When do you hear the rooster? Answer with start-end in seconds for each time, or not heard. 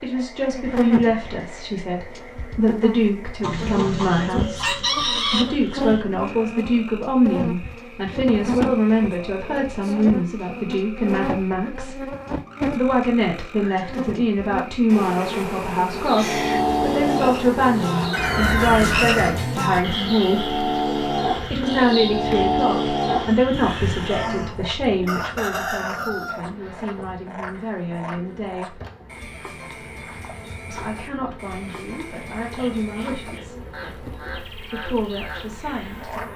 3.4-5.5, 18.1-19.4, 25.0-26.4.